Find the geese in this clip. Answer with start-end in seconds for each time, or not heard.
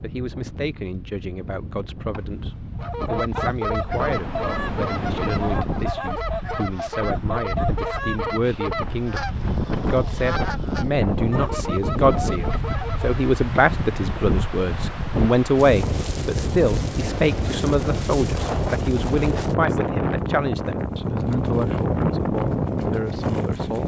2.8-13.2.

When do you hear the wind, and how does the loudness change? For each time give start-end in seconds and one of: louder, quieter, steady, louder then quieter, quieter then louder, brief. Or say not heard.
0.0-23.8 louder.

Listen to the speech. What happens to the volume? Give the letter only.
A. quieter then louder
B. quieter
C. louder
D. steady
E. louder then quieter
E.